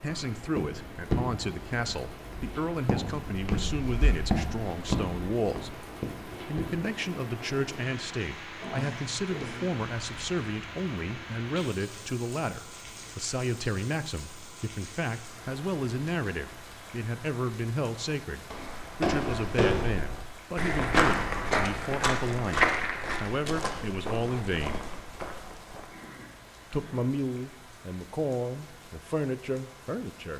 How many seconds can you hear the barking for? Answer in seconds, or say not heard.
not heard.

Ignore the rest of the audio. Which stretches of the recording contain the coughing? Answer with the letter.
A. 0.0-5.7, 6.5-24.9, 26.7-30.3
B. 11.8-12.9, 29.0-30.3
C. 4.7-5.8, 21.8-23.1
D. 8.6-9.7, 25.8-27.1
D.